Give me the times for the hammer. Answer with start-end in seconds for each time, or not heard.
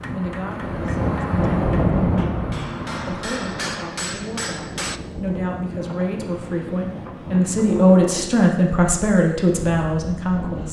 0.0-5.0.